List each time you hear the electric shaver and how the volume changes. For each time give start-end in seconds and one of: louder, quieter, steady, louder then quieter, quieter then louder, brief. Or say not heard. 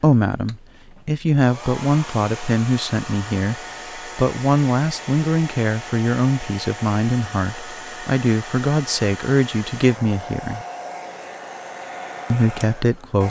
not heard.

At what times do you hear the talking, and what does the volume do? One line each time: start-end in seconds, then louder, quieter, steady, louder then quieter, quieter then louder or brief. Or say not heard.
0.0-10.7 steady
12.3-13.2 brief.